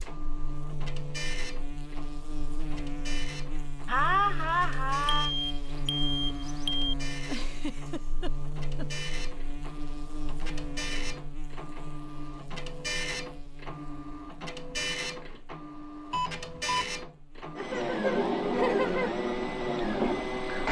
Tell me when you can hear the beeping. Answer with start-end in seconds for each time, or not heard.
5.1-6.9, 16.1-16.9.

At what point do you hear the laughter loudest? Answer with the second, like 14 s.
4 s.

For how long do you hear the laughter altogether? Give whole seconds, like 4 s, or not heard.
5 s.